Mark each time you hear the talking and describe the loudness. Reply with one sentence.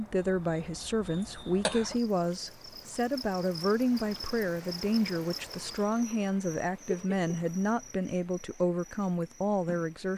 The talking can be heard from 0.0 to 10.1 s, at a steady volume.